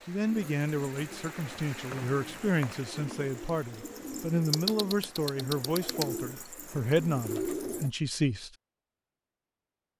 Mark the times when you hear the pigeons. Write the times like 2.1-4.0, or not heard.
0.2-7.9.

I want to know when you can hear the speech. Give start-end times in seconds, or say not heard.
0.1-8.5.